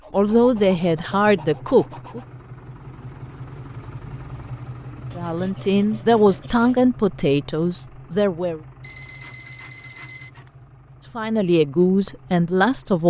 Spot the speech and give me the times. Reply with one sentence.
The speech can be heard from 0.1 to 2.2 s, from 5.2 to 8.6 s and from 11.2 to 13.0 s.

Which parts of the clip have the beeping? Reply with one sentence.
The beeping can be heard from 8.8 to 10.3 s.